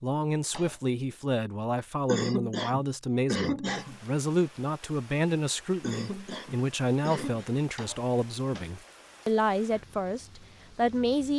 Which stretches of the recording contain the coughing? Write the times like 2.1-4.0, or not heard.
2.0-4.0, 5.8-7.5.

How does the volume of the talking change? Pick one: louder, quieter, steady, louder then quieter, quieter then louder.
steady.